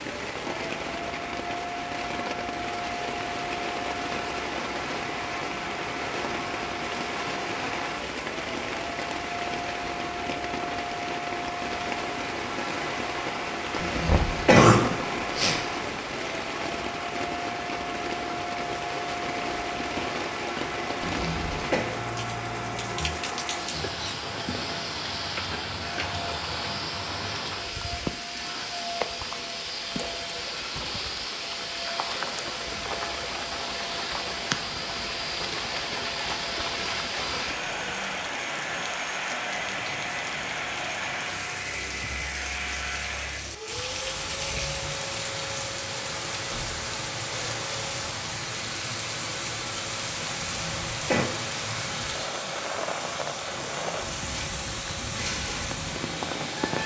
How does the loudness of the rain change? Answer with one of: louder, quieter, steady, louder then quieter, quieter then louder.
steady.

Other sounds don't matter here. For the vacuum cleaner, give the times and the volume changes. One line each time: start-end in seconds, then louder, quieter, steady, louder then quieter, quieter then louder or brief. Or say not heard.
0.0-56.8 steady.